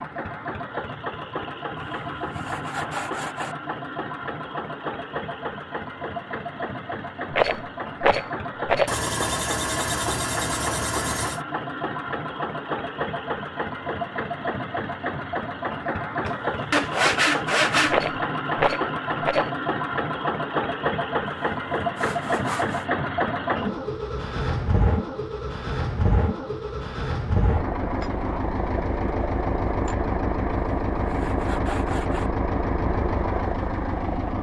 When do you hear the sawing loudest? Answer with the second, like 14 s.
17 s.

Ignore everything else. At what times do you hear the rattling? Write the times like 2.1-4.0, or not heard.
7.3-8.9, 17.9-19.5.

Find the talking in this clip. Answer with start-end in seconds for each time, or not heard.
not heard.